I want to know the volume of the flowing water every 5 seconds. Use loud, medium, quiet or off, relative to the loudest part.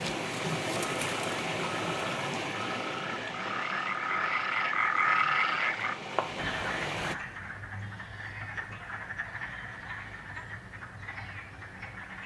loud, loud, off.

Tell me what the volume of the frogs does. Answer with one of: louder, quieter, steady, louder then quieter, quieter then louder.
louder then quieter.